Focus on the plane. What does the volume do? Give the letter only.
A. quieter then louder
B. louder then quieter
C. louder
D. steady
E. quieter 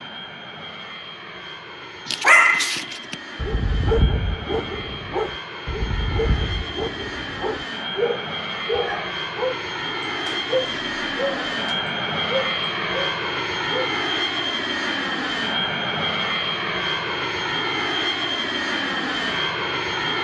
C.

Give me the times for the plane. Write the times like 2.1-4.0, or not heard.
0.0-20.2.